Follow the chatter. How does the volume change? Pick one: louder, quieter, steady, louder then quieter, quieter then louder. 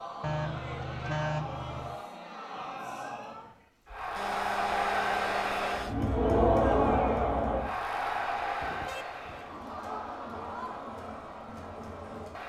louder then quieter.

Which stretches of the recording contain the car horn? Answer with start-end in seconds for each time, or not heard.
0.2-2.0, 4.2-6.0, 8.6-9.8.